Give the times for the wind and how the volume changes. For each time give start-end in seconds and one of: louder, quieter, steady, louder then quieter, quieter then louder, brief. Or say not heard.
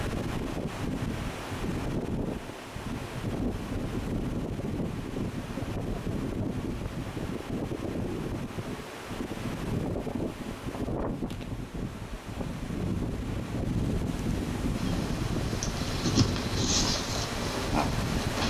0.0-18.4 steady.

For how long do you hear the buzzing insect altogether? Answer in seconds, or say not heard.
4 s.